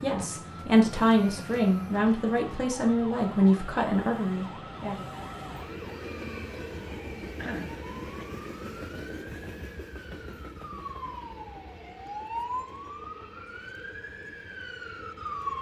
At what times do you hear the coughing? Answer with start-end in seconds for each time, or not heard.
7.3-8.2.